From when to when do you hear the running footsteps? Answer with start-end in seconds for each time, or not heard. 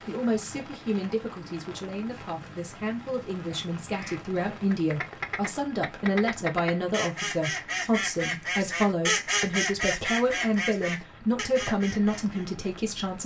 not heard.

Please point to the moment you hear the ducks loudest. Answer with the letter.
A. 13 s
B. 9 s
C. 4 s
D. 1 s
B.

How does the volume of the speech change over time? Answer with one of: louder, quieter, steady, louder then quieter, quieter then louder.
louder.